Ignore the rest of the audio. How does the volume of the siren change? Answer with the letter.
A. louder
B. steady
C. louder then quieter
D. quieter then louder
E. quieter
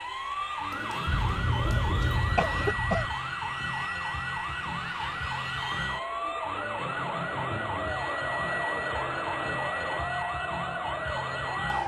B.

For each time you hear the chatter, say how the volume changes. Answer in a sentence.
You can hear the chatter from 0.0 to 11.8 s, getting louder.